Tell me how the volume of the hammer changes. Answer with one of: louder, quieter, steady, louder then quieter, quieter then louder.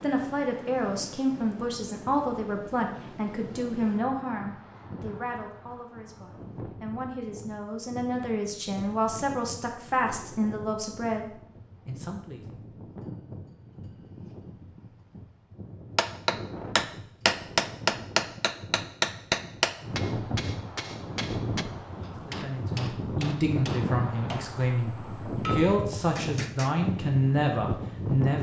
quieter.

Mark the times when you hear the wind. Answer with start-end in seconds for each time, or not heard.
0.0-28.3.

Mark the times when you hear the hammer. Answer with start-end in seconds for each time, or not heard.
15.9-26.8.